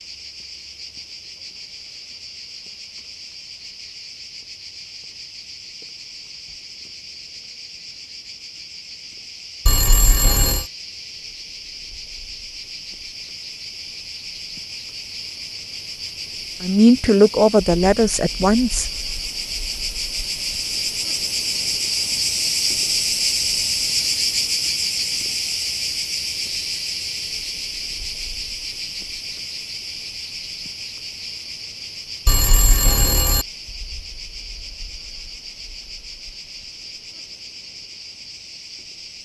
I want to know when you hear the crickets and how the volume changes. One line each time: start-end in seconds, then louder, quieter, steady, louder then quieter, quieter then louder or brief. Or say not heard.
0.0-39.2 louder then quieter.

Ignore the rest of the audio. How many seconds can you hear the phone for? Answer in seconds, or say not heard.
2 s.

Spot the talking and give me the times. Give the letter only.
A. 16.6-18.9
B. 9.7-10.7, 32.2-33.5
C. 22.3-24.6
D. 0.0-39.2
A.